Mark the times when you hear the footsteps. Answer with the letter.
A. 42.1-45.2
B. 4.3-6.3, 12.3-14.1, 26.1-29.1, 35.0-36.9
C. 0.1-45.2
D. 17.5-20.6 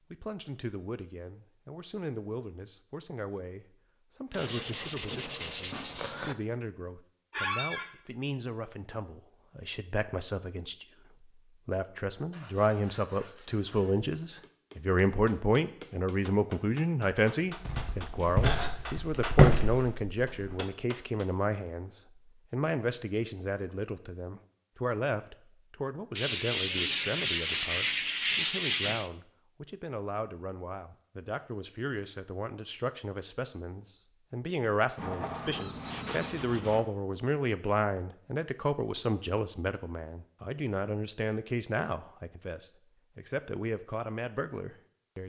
D.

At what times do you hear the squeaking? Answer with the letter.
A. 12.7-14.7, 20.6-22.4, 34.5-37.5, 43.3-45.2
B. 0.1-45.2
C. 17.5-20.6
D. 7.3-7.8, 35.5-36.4
D.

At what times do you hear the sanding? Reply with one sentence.
The sanding can be heard from 4.3 to 6.3 s, from 12.3 to 14.1 s, from 26.1 to 29.1 s and from 35.0 to 36.9 s.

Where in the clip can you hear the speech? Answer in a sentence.
The speech can be heard from 0.1 to 45.2 s.